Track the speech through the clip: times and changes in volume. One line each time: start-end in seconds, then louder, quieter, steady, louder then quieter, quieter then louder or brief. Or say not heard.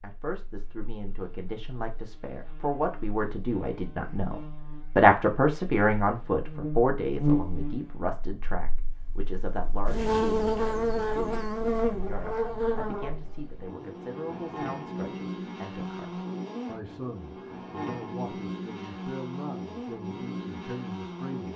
0.0-21.5 louder then quieter.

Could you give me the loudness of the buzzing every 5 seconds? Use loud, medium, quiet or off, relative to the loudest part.
quiet, loud, loud, medium, medium.